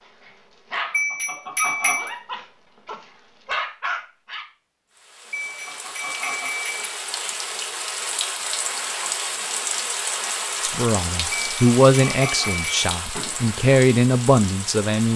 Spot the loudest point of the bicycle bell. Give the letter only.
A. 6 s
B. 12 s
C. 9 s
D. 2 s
D.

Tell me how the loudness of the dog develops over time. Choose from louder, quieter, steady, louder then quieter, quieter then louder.
quieter then louder.